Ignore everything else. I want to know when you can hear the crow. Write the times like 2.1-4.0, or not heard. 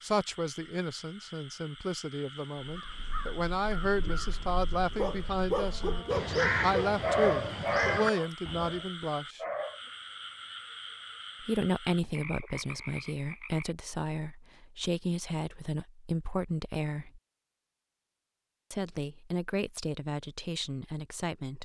2.6-8.8.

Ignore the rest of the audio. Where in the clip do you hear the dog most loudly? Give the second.
7 s.